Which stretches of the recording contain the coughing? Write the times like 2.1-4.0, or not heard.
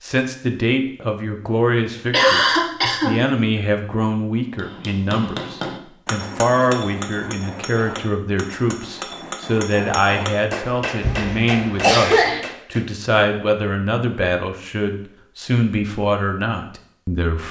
2.1-3.1, 11.0-12.4.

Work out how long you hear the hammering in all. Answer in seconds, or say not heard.
8 s.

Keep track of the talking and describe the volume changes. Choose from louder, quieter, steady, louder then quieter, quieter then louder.
steady.